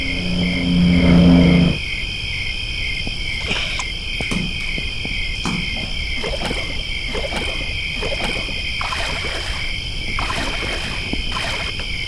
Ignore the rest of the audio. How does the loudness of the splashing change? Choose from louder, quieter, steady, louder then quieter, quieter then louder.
steady.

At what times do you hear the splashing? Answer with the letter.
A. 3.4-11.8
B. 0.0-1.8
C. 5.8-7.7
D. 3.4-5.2
A.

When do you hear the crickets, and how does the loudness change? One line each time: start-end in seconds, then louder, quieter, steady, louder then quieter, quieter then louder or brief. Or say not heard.
0.0-12.0 steady.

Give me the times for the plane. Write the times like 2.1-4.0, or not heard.
0.0-1.8.